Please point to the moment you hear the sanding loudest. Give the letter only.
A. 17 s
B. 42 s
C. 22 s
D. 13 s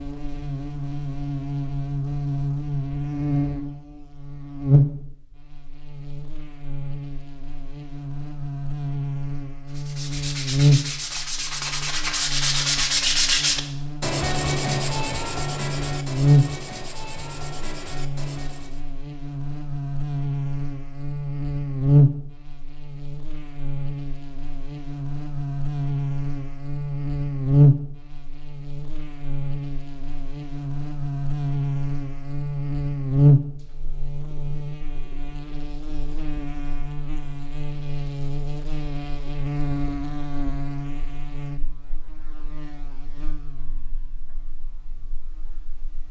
D.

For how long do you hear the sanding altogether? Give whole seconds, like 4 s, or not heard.
9 s.